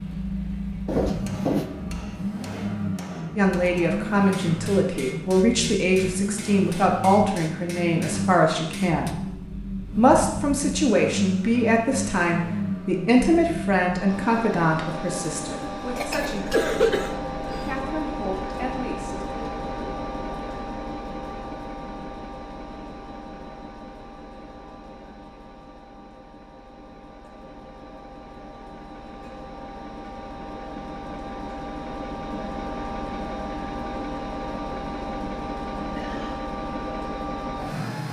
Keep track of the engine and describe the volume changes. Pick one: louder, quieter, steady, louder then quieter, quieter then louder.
quieter then louder.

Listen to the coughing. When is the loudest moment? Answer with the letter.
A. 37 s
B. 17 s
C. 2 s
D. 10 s
B.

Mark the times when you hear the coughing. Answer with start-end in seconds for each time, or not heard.
0.8-1.6, 15.9-17.8, 35.8-36.4.